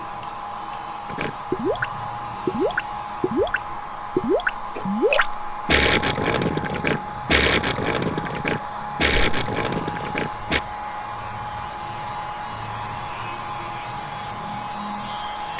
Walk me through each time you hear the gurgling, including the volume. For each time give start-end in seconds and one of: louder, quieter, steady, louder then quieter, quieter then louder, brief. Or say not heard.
1.1-10.6 steady.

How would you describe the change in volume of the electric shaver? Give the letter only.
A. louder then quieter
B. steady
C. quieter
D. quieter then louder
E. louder
D.